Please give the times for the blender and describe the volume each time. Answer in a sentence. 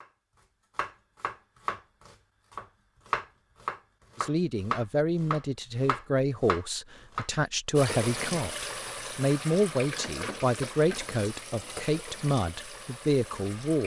You can't hear the blender here.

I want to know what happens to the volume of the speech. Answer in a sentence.
The loudness of the speech stays about the same.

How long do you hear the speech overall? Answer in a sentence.
The speech can be heard for 10 seconds in total.